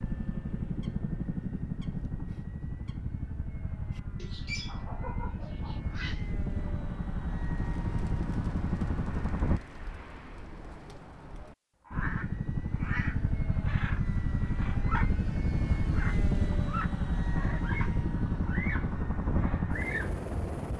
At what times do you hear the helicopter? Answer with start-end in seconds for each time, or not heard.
0.0-9.6, 11.9-20.7.